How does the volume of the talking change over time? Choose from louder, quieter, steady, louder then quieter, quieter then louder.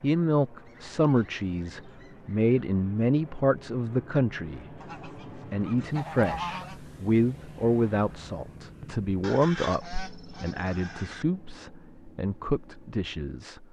quieter.